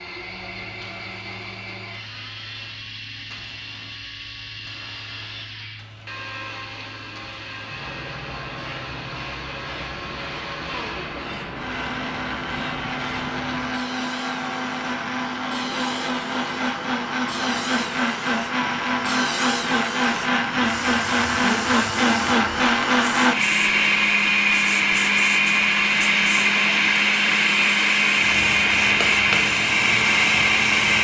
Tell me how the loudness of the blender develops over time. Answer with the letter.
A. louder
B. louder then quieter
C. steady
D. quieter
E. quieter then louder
A.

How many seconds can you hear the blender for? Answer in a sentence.
You can hear the blender for 31 seconds altogether.